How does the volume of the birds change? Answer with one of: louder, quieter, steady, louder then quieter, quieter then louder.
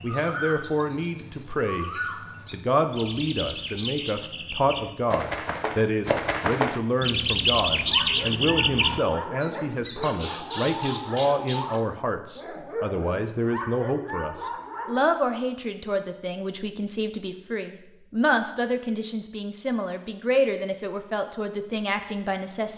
louder.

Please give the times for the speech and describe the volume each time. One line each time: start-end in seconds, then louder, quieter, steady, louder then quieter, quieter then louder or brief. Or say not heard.
0.0-1.9 brief
2.5-22.7 steady.